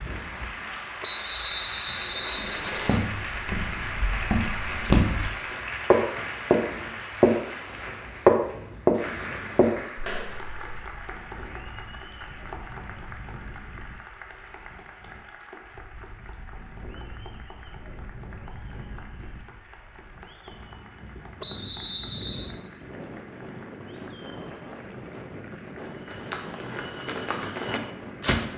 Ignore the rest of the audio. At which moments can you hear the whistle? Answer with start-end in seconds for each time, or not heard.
1.0-3.0, 21.4-22.6.